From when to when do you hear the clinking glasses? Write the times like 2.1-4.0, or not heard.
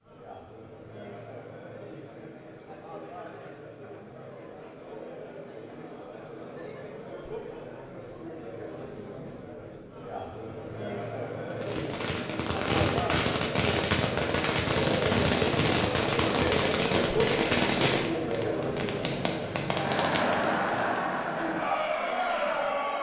not heard.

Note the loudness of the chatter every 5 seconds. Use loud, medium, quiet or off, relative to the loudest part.
quiet, quiet, medium, loud, loud.